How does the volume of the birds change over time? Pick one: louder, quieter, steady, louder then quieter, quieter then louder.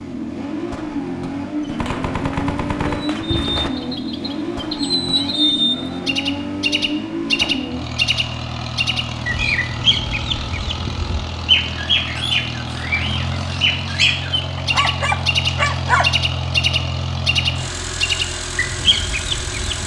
steady.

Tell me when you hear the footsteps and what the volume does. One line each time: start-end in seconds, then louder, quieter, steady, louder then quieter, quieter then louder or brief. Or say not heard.
not heard.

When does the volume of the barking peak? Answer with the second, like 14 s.
16 s.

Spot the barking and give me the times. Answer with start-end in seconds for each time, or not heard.
14.6-16.1.